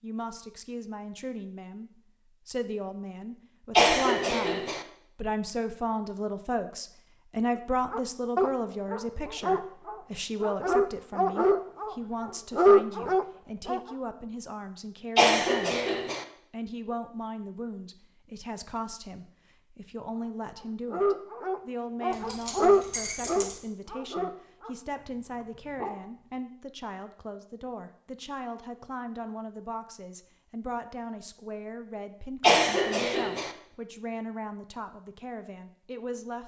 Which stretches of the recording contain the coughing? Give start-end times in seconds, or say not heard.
3.8-4.8, 15.2-16.2, 32.4-33.5.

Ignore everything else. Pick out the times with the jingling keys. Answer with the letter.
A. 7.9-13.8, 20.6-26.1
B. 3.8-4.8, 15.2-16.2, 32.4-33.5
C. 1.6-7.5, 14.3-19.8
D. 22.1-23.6
D.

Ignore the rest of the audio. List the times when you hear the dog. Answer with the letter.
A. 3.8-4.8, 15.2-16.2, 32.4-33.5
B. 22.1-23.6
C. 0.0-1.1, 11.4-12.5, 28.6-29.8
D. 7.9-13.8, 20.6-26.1
D.